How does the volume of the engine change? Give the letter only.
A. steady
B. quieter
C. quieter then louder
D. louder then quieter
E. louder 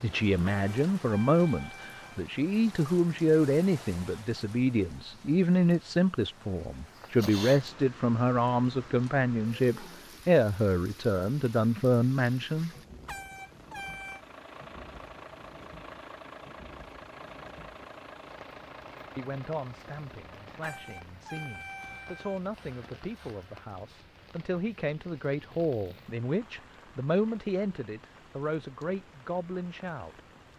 B.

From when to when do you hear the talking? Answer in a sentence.
You can hear the talking from 0.0 to 12.7 s and from 19.1 to 30.2 s.